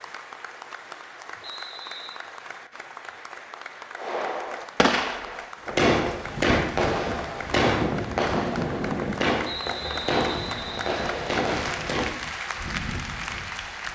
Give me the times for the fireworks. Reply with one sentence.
The fireworks can be heard from 4.0 to 12.2 s.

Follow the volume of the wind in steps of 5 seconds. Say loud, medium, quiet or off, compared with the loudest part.
off, loud, medium.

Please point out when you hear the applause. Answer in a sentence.
The applause can be heard from 0.0 to 13.9 s.